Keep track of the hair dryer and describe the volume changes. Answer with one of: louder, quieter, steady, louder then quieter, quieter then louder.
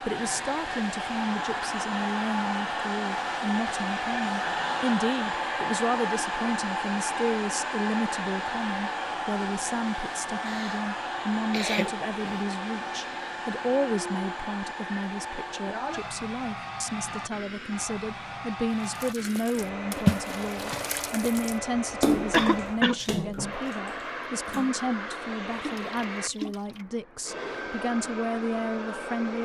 quieter.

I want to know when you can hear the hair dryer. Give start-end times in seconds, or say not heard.
0.0-29.4.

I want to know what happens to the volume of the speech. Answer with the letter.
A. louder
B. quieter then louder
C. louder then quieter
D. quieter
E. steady
E.